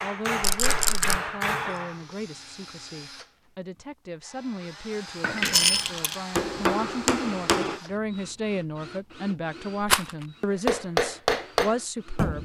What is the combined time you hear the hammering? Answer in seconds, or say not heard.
6 s.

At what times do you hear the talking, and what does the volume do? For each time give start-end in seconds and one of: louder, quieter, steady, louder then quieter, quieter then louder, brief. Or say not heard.
0.0-12.3 louder.